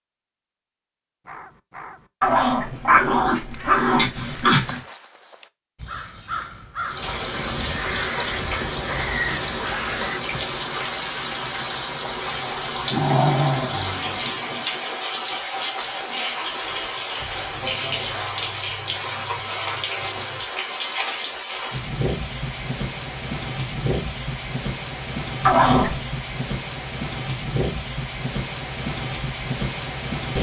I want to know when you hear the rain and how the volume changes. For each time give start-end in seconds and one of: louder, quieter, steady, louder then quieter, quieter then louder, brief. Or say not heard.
6.8-30.3 steady.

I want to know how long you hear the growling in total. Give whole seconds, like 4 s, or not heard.
5 s.